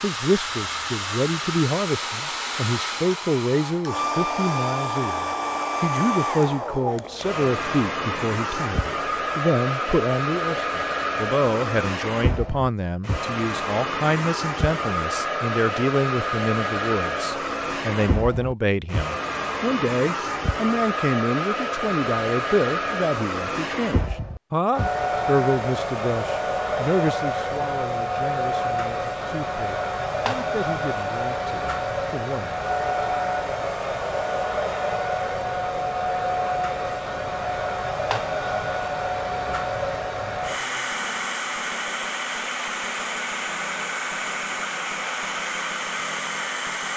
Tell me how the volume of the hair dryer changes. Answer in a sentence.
The loudness of the hair dryer stays about the same.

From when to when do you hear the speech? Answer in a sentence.
The speech can be heard from 0.0 to 32.6 s.